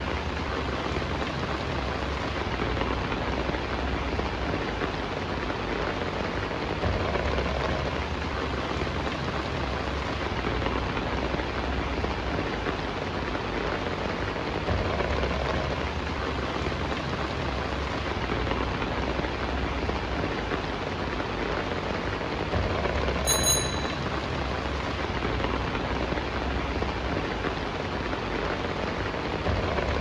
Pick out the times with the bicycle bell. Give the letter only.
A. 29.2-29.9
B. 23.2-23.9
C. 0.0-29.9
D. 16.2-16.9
B.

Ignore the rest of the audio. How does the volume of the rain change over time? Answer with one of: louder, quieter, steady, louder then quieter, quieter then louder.
steady.